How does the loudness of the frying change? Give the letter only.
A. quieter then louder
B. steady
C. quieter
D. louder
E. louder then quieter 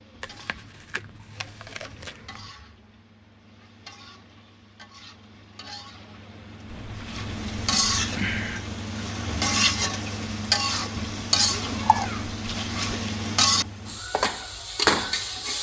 D.